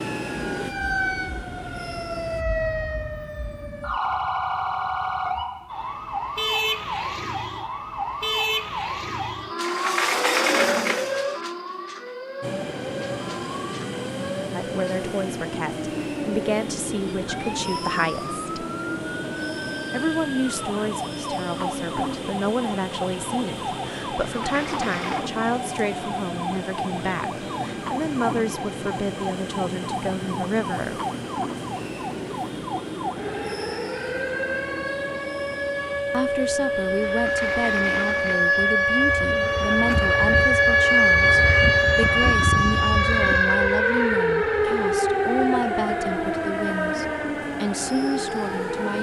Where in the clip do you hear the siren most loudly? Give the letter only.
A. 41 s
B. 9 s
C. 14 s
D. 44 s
A.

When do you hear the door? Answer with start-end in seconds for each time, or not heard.
9.6-11.5, 24.2-25.2, 37.0-38.5.